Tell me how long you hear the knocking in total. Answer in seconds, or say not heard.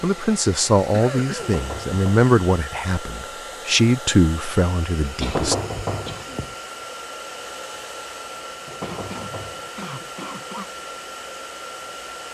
3 s.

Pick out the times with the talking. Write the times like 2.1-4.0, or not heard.
0.0-5.5.